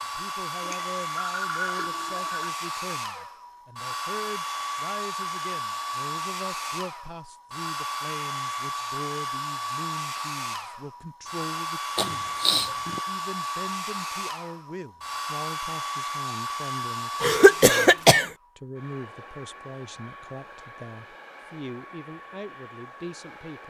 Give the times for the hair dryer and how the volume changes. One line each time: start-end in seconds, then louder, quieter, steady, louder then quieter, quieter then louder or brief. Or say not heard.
0.0-23.6 quieter.